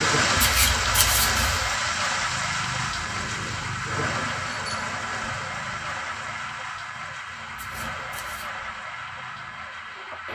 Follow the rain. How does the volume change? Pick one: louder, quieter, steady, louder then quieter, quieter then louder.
quieter.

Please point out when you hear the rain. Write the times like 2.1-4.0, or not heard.
0.0-10.3.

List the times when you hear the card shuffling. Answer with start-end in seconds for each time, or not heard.
0.3-1.8, 7.5-8.6.